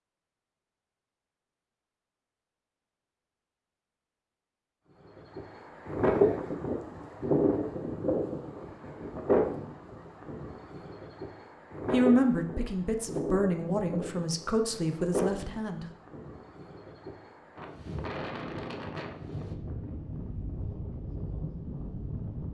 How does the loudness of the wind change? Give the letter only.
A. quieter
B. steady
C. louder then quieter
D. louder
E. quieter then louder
A.